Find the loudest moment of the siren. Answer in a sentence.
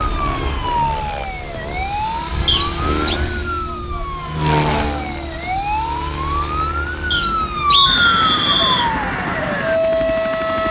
The loudest moment of the siren is at 8 seconds.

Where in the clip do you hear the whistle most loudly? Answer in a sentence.
The loudest moment of the whistle is at 8 seconds.